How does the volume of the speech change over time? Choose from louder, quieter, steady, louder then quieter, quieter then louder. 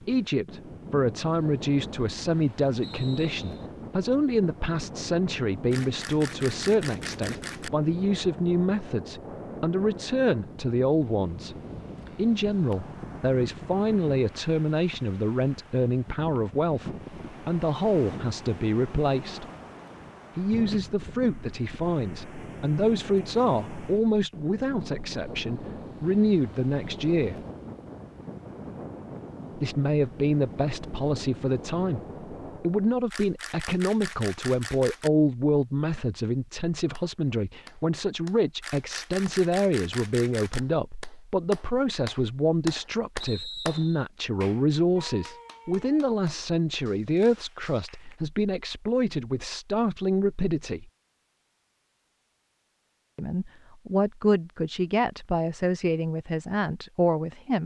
steady.